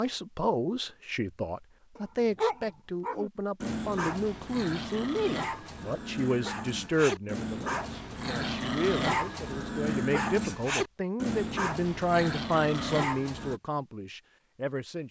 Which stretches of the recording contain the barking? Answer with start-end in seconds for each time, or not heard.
1.9-13.6.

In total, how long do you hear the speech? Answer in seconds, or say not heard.
15 s.